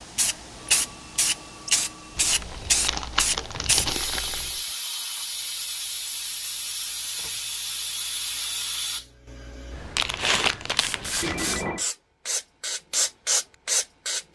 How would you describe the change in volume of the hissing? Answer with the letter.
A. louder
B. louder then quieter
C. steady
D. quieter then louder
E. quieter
D.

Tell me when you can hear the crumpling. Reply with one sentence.
You can hear the crumpling from 2.1 to 4.6 s and from 9.9 to 11.7 s.